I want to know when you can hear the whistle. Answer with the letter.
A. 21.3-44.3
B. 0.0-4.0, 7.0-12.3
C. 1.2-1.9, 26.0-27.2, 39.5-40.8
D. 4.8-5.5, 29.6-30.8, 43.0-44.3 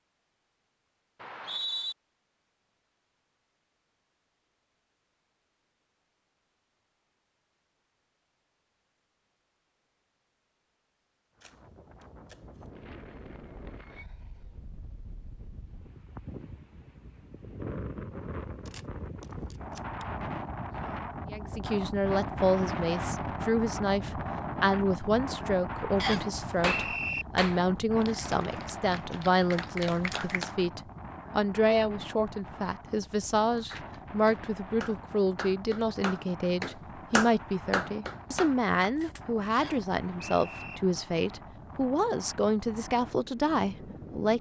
C.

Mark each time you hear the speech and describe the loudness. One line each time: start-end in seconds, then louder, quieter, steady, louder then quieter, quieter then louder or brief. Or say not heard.
21.3-44.3 steady.